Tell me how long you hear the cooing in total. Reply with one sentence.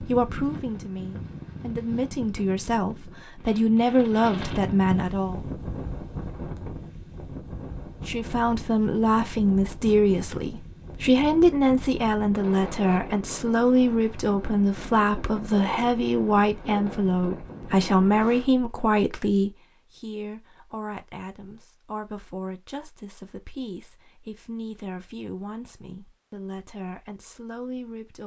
You can't hear the cooing here.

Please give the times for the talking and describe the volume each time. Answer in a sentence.
You can hear the talking from 0.0 to 5.4 s, getting louder; and from 8.1 to 28.2 s, getting quieter.